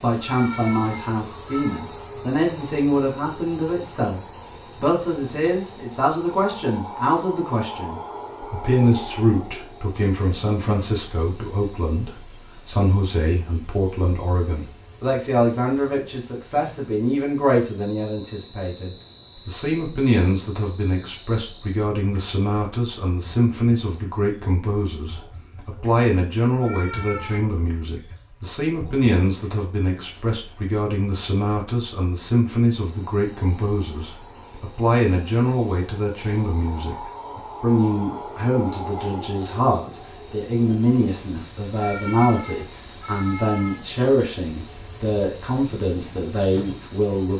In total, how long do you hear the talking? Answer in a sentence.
The talking can be heard for 47 seconds in total.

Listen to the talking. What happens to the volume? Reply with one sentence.
The loudness of the talking stays about the same.